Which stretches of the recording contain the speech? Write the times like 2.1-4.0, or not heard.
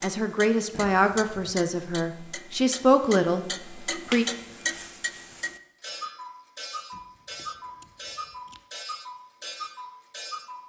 0.0-4.2.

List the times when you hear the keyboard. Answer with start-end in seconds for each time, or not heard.
not heard.